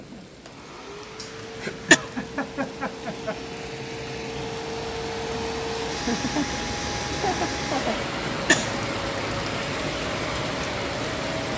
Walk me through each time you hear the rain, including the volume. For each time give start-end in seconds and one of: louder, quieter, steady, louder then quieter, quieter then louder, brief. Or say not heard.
0.0-11.5 louder.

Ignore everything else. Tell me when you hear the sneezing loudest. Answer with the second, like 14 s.
2 s.